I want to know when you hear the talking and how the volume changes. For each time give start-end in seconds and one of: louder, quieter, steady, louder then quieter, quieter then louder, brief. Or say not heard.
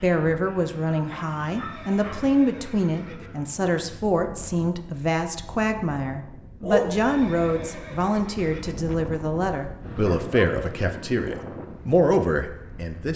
0.0-13.1 steady.